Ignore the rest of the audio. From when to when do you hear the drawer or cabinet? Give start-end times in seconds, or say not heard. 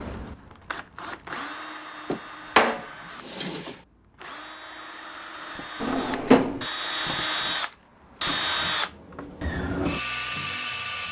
2.1-3.8, 5.8-6.7.